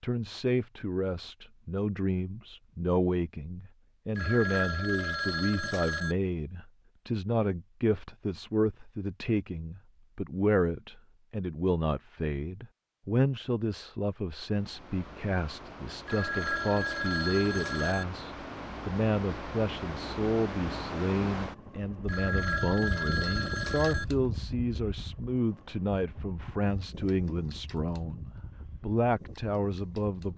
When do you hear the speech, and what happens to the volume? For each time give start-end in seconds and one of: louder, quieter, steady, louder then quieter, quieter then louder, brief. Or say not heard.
0.0-30.3 steady.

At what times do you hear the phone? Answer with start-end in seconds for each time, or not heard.
4.2-6.2, 16.1-18.1, 22.1-24.1.